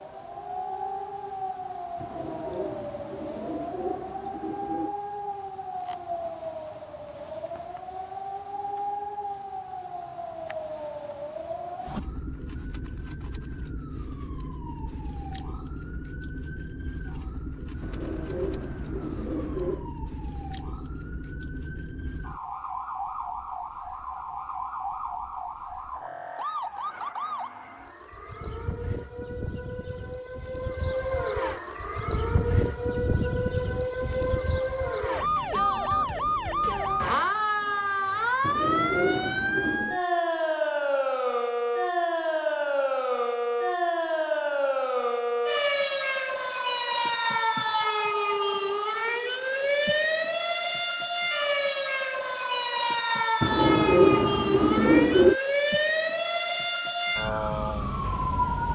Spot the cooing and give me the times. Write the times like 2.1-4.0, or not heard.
2.0-5.0, 17.8-19.9, 38.4-40.0, 53.4-55.4.